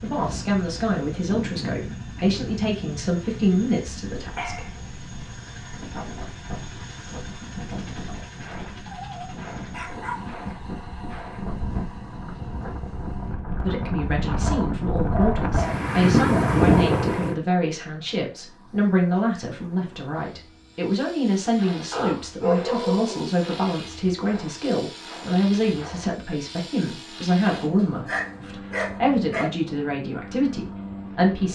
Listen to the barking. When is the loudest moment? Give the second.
23 s.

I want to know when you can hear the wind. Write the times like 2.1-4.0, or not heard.
0.0-17.4.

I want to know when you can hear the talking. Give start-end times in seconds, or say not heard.
0.0-4.7, 13.6-31.5.